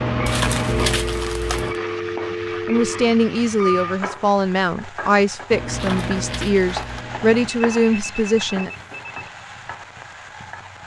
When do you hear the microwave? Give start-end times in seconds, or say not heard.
0.0-1.8, 5.5-7.5.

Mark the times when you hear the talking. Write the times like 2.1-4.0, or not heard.
2.6-8.7.